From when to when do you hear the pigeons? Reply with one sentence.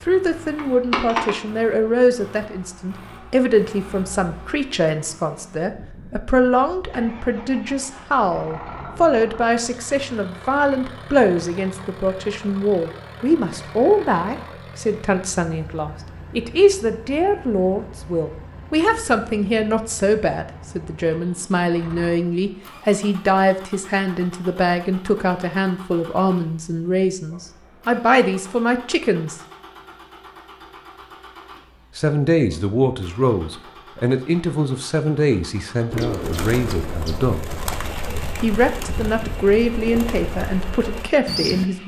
The pigeons can be heard from 35.9 to 41.6 s.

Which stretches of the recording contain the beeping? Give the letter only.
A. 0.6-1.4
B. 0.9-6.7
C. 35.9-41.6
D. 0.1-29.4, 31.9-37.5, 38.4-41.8
A.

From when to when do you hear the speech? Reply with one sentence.
The speech can be heard from 0.1 to 29.4 s, from 31.9 to 37.5 s and from 38.4 to 41.8 s.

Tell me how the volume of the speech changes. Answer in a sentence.
The loudness of the speech stays about the same.